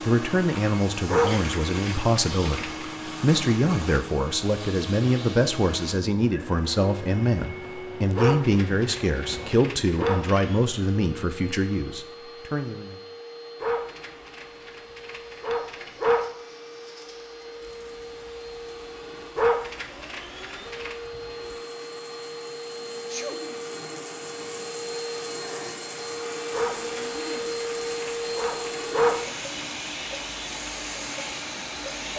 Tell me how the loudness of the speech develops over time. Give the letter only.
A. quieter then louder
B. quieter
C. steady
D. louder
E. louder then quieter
C.